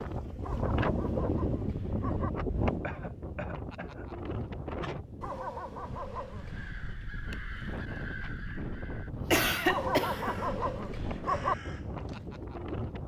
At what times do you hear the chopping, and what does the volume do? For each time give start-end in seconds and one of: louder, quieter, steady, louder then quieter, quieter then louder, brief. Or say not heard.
not heard.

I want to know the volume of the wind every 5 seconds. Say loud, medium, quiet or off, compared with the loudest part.
loud, medium, medium.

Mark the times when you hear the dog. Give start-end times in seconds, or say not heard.
0.4-2.3, 5.2-6.8, 9.7-11.6.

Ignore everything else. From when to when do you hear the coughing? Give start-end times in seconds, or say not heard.
2.8-4.0, 9.1-10.3.